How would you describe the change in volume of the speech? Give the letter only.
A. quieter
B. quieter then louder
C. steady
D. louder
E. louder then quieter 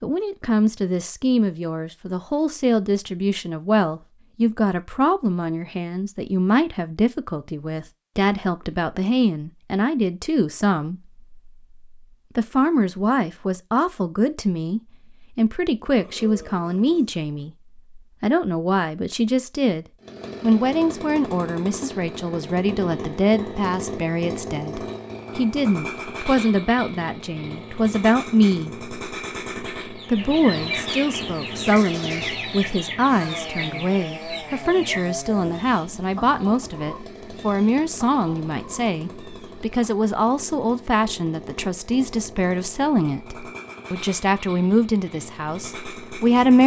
C.